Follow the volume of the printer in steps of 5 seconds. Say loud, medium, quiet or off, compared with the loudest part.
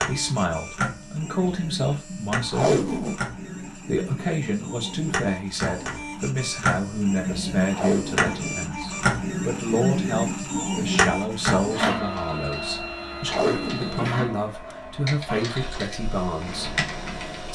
medium, loud, loud, medium.